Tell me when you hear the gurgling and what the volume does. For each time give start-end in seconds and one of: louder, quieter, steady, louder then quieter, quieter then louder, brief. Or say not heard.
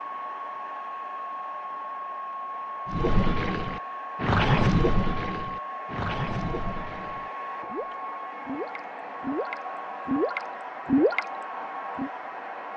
2.9-12.1 quieter then louder.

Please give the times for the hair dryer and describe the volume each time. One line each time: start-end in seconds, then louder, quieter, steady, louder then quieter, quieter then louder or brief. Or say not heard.
0.0-12.7 steady.